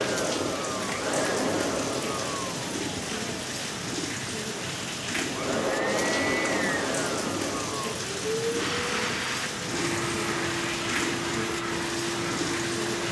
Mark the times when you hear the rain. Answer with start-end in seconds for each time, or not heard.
0.0-13.0.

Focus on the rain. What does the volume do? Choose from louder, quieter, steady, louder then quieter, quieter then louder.
steady.